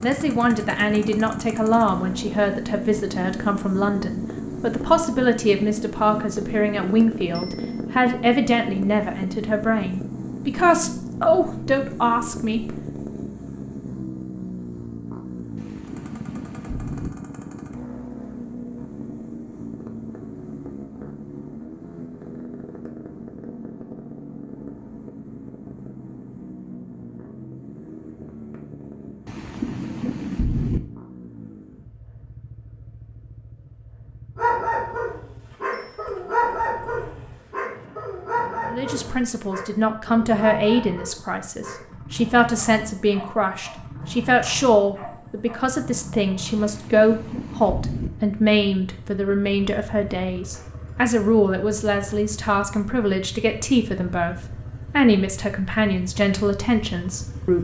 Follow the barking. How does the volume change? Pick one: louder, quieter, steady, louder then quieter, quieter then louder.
quieter.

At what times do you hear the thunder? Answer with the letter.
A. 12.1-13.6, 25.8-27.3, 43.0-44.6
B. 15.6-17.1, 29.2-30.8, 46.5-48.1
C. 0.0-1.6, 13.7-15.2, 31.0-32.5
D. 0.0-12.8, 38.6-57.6
B.